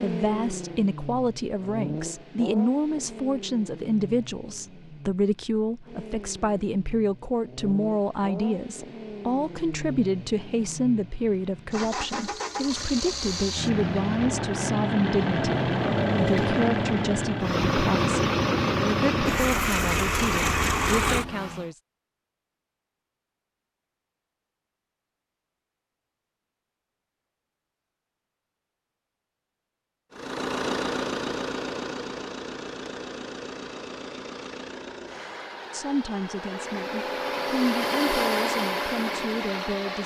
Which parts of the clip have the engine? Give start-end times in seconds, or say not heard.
0.0-21.7, 30.1-40.0.